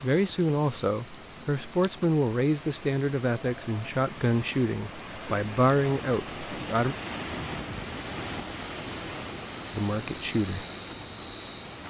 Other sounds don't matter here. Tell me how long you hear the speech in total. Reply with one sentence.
The speech can be heard for 8 seconds in total.